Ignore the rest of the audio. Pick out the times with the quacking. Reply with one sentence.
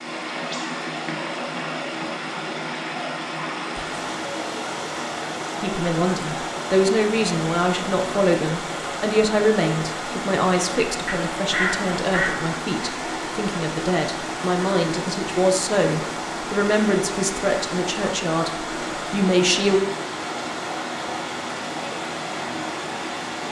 You can hear the quacking from 11.1 to 12.4 s.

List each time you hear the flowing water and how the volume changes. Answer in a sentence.
You can hear the flowing water from 0.0 to 23.4 s, at a steady volume.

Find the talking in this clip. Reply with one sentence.
You can hear the talking from 5.6 to 19.8 s.